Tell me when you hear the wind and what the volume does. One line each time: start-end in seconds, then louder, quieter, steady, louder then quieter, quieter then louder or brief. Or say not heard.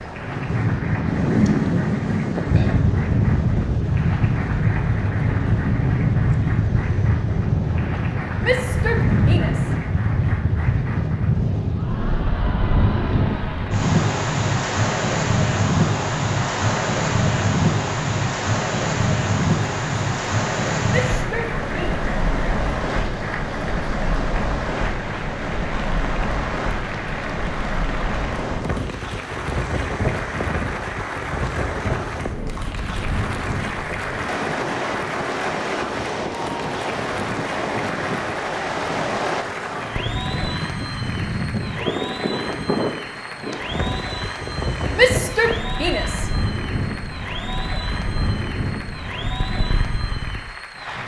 0.0-51.0 quieter.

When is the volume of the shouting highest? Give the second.
45 s.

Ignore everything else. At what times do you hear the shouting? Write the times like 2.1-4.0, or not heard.
8.4-9.8, 20.9-22.0, 45.0-46.3.